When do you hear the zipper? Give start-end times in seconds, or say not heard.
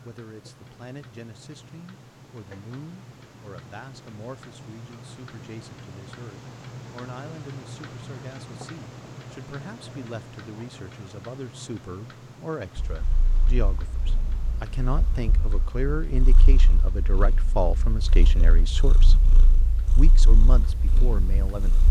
not heard.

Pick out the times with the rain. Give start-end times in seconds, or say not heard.
not heard.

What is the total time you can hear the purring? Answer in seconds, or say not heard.
9 s.